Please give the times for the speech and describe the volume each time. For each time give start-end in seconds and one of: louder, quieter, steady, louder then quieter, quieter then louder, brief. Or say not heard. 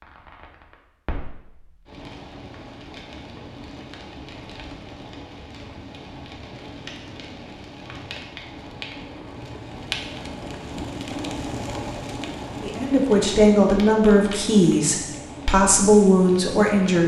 12.6-17.0 steady.